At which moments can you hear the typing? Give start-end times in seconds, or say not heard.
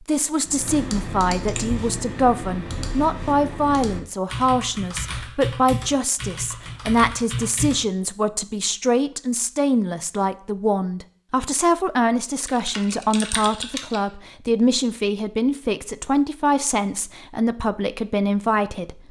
0.5-7.8, 12.4-14.0.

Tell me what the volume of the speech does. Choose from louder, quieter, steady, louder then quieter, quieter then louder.
steady.